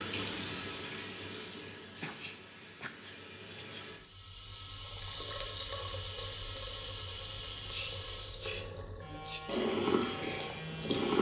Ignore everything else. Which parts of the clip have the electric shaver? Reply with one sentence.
You can hear the electric shaver from 9.0 to 11.1 s.